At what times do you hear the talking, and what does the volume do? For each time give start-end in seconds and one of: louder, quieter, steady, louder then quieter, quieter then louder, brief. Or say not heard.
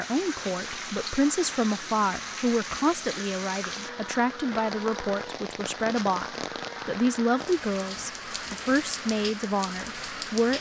0.0-10.5 steady.